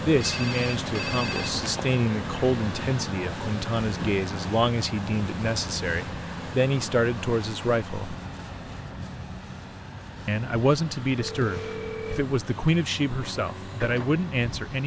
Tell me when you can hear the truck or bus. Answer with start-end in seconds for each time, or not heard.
0.0-14.8.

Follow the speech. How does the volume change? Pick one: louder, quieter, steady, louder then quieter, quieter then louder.
steady.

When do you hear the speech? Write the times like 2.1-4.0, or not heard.
0.0-8.2, 10.2-14.8.